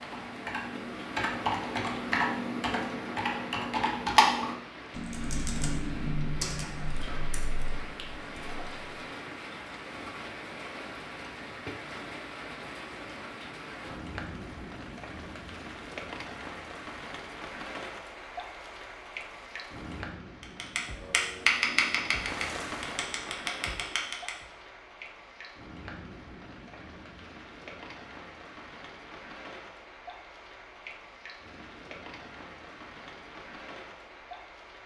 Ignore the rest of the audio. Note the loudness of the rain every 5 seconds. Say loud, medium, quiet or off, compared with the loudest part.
loud, loud, loud, loud, loud, medium, medium.